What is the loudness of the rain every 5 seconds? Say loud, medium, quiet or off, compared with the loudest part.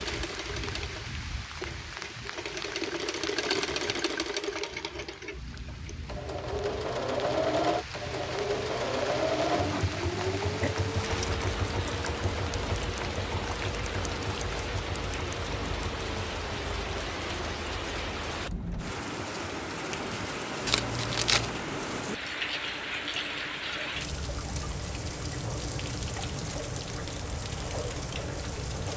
medium, medium, loud, loud, loud, loud.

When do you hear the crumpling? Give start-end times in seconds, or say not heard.
20.6-21.6.